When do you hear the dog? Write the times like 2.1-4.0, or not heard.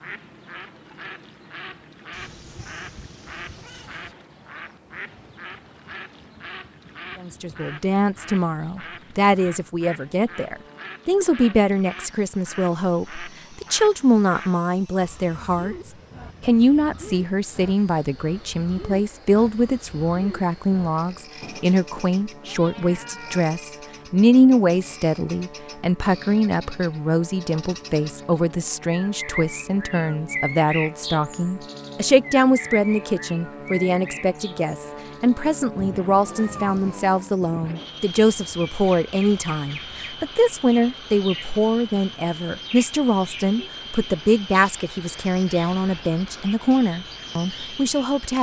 not heard.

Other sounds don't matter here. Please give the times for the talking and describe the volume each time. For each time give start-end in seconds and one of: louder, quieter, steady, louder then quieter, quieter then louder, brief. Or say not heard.
7.2-48.3 steady.